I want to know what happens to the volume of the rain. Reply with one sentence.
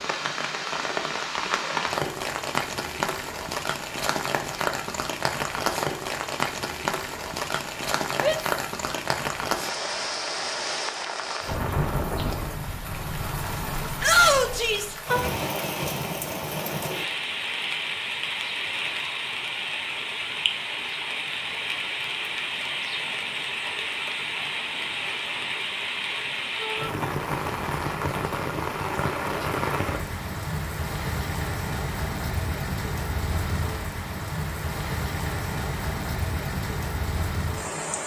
The volume of the rain stays about the same.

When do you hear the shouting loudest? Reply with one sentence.
The loudest moment of the shouting is at 14 seconds.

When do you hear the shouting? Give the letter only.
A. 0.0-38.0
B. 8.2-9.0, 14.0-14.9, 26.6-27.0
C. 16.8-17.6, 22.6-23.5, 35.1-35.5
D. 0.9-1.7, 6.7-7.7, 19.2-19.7
B.